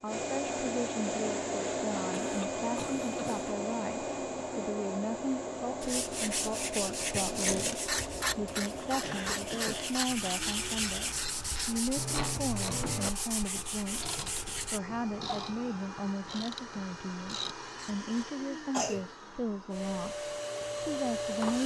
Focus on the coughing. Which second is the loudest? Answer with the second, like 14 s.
19 s.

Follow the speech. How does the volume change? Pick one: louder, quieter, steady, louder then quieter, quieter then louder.
steady.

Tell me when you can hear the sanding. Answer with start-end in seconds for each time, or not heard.
5.8-14.8.